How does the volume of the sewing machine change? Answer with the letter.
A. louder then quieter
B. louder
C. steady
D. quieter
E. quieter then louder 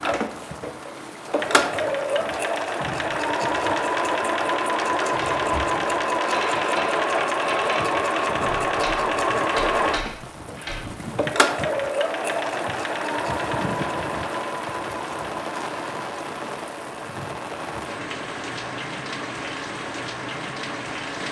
D.